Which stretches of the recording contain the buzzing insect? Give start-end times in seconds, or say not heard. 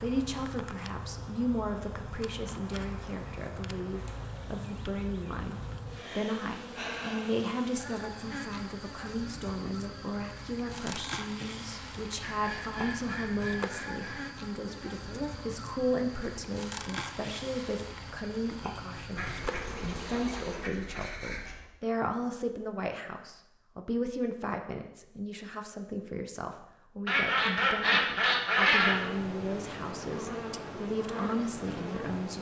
0.0-20.7, 28.8-32.3.